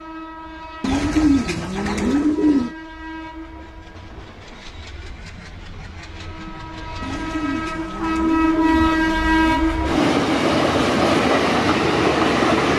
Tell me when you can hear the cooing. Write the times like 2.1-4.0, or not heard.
0.8-2.7, 7.0-9.7.